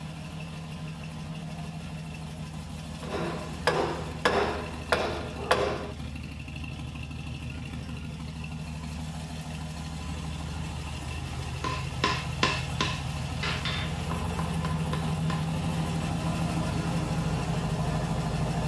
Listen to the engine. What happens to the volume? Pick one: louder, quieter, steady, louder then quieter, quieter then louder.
louder.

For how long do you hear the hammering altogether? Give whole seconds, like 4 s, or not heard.
7 s.